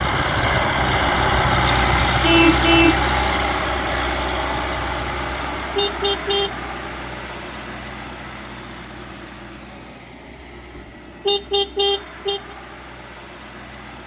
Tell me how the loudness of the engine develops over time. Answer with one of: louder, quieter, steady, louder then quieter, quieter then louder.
quieter.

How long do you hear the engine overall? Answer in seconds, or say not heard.
14 s.